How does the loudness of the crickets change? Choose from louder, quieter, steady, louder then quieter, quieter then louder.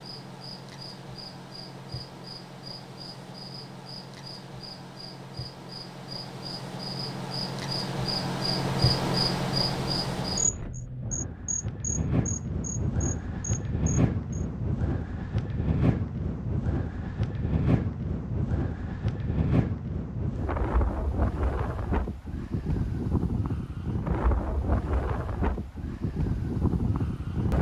louder then quieter.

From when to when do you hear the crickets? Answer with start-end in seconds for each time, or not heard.
0.0-14.4.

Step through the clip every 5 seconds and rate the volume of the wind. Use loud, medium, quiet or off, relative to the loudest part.
off, off, loud, loud, loud, loud.